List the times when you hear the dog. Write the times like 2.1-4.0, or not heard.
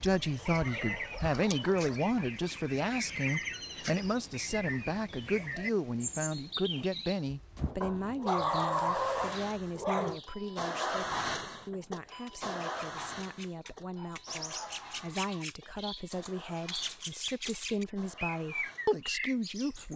0.4-1.9, 7.8-10.2, 13.7-15.3.